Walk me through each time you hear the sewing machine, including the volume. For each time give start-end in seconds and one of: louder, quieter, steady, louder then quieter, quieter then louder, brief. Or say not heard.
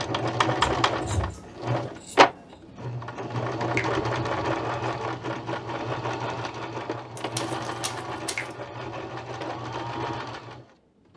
0.0-11.1 quieter.